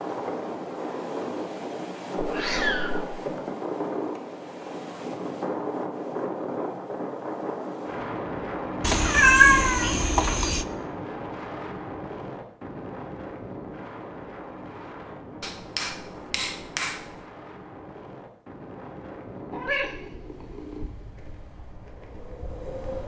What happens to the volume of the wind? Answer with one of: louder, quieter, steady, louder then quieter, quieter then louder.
quieter.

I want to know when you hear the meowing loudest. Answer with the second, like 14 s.
9 s.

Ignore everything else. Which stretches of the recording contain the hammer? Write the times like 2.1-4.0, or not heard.
15.4-17.2.